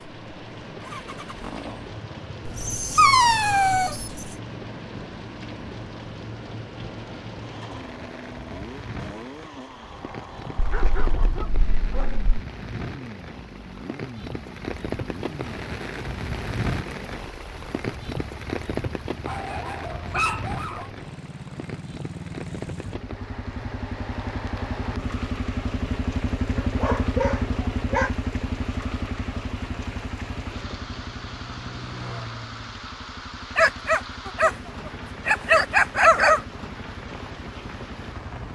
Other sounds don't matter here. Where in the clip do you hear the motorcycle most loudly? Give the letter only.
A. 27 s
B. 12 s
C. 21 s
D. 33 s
A.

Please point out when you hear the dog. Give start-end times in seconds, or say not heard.
2.5-4.3, 10.6-12.2, 19.2-20.9, 26.6-28.1, 33.5-36.4.